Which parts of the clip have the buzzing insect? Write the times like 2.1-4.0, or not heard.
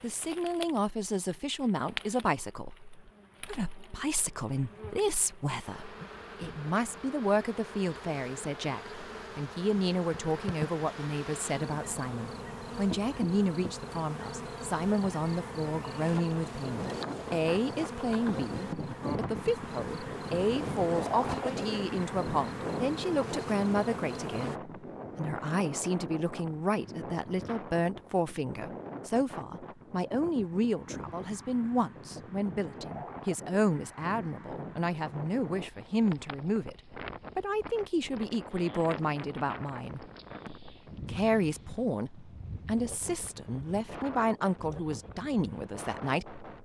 0.0-24.6.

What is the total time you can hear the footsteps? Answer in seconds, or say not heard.
not heard.